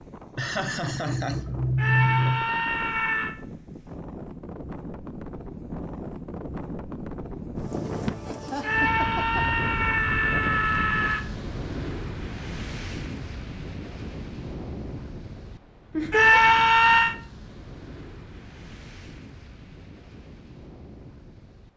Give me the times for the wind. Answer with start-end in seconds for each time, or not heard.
0.0-21.7.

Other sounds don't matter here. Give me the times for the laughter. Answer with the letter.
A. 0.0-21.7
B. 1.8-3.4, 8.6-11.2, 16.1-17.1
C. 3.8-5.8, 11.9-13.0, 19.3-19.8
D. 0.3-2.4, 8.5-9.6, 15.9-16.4
D.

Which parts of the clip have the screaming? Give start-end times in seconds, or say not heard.
1.8-3.4, 8.6-11.2, 16.1-17.1.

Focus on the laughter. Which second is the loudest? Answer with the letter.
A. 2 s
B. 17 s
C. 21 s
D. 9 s
A.